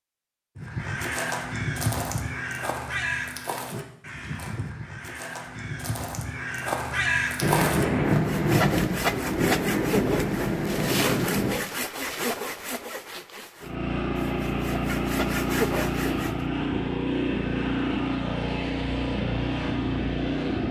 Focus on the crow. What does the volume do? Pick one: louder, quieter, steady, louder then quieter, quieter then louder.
quieter then louder.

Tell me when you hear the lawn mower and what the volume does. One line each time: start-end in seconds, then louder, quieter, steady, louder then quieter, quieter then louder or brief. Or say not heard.
13.6-20.6 steady.